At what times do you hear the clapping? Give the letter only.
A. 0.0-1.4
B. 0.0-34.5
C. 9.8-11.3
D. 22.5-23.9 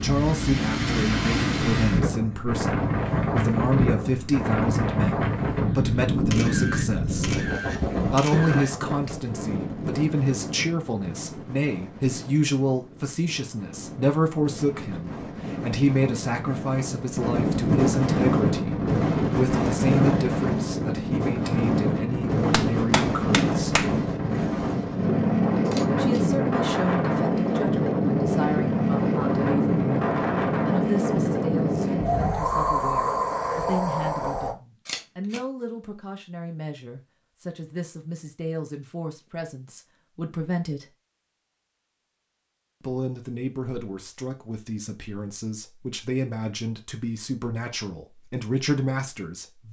D.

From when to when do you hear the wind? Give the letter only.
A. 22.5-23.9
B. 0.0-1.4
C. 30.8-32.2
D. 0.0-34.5
D.